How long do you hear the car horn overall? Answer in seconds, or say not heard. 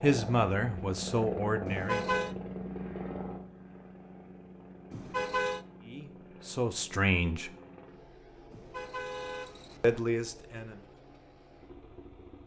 3 s.